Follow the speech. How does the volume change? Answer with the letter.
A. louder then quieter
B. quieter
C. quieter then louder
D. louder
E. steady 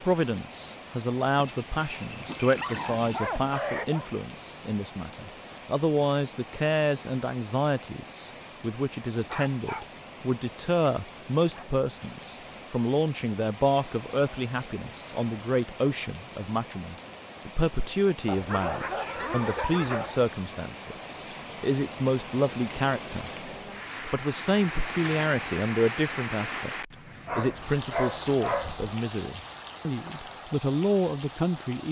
E.